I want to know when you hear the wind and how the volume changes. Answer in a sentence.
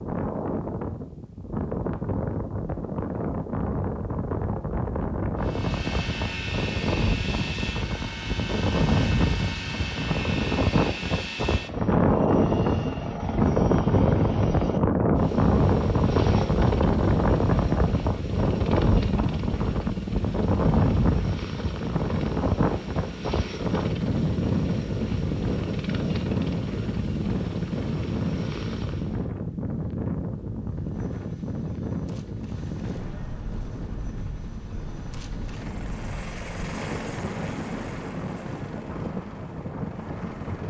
You can hear the wind from 0.0 to 40.6 s, getting louder then quieter.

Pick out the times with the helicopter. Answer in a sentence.
You can hear the helicopter from 5.4 to 29.3 s and from 30.6 to 40.6 s.